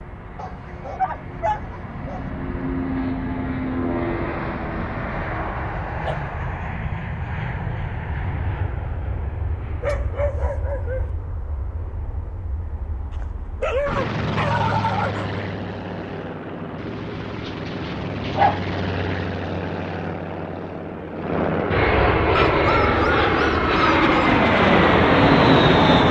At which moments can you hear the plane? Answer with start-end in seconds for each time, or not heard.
0.0-26.0.